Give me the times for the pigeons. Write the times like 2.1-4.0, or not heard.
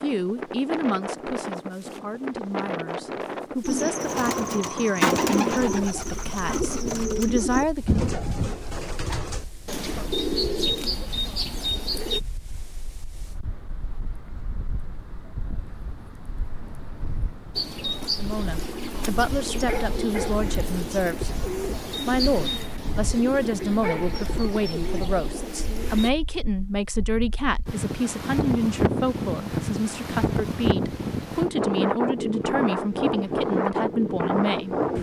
3.6-12.2, 17.6-26.1.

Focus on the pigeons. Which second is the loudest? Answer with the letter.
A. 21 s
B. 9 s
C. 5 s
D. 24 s
C.